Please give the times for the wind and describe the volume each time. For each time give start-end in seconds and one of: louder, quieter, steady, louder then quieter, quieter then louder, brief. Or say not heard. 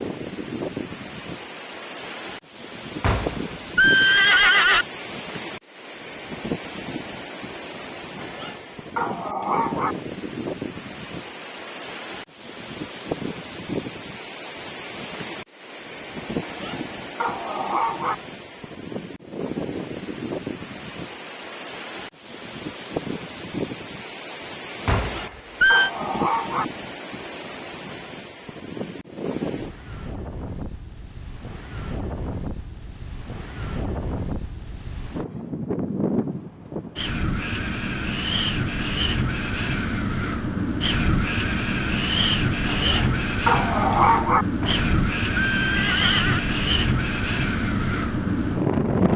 0.0-49.1 louder.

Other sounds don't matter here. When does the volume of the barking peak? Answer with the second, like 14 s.
44 s.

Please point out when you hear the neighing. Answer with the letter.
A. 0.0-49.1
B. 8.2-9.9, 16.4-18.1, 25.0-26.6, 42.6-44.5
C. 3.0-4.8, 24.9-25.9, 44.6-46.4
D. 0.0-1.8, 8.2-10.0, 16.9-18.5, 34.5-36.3
C.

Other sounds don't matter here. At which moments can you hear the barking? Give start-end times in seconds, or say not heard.
8.2-9.9, 16.4-18.1, 25.0-26.6, 42.6-44.5.